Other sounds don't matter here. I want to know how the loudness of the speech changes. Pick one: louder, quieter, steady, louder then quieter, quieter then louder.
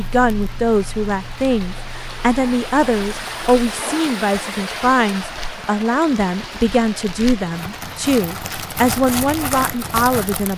steady.